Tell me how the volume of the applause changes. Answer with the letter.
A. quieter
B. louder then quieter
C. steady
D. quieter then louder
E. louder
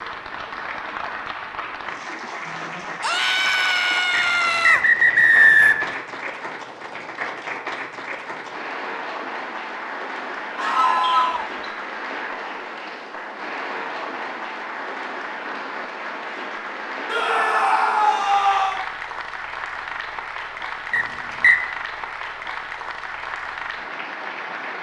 C.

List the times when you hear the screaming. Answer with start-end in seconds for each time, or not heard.
3.0-4.8, 10.6-11.5, 17.1-18.9.